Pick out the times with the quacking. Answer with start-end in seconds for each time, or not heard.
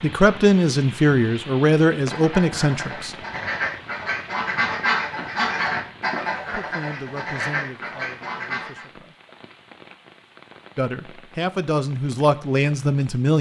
2.1-8.8.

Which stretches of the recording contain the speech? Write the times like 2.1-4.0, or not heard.
0.0-3.1, 6.5-9.2, 10.8-13.3.